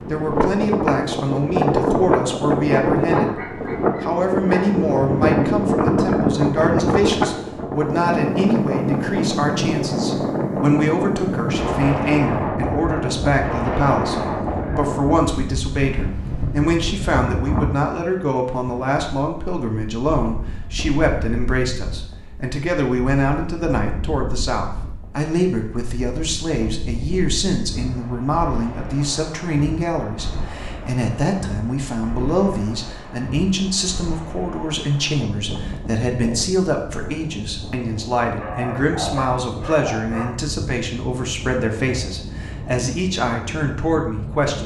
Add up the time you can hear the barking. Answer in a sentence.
You can hear the barking for 4 seconds altogether.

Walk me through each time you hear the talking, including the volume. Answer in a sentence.
The talking can be heard from 0.1 to 44.6 s, at a steady volume.